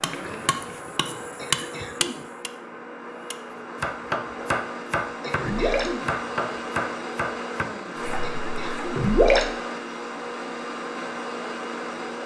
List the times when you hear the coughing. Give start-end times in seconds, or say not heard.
1.4-2.2, 5.2-6.1, 8.2-8.9.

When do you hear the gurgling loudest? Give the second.
9 s.